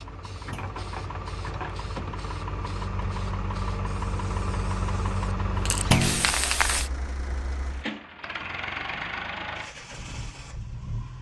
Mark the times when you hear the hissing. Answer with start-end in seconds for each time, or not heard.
0.0-6.9.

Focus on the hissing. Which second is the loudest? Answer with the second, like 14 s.
6 s.